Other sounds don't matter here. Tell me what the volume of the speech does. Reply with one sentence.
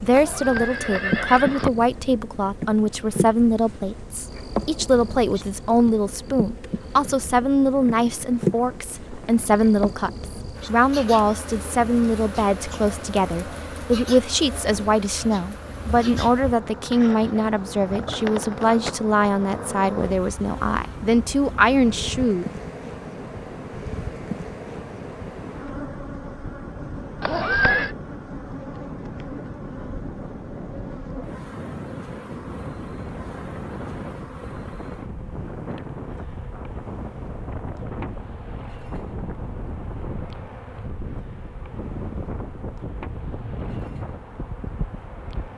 The loudness of the speech stays about the same.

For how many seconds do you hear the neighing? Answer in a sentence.
You can hear the neighing for 2 seconds altogether.